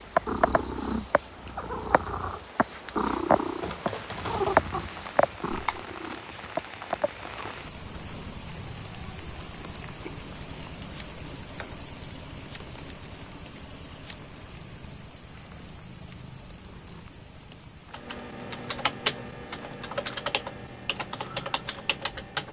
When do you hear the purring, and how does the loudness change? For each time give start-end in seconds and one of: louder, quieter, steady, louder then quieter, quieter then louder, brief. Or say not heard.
0.0-22.4 quieter.